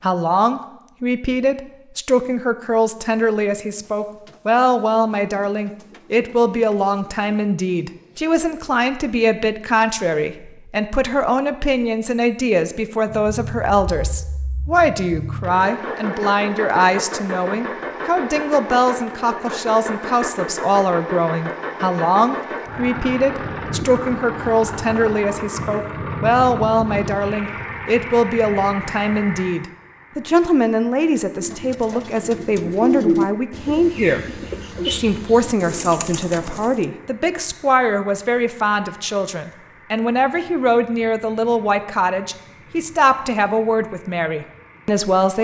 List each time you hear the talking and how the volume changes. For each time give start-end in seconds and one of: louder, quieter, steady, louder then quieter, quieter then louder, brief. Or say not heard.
0.0-45.3 steady.